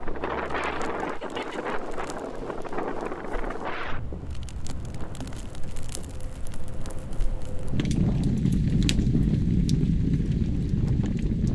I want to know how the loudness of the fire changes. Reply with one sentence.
The loudness of the fire goes up.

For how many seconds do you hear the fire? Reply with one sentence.
The fire can be heard for 11 seconds in total.